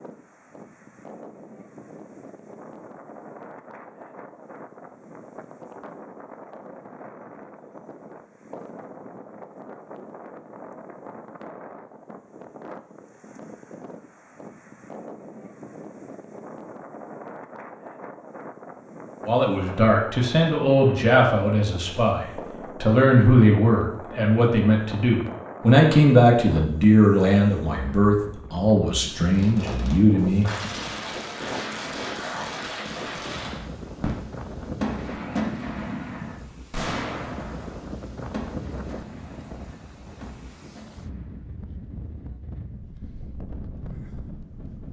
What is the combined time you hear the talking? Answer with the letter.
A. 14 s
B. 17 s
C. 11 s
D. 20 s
C.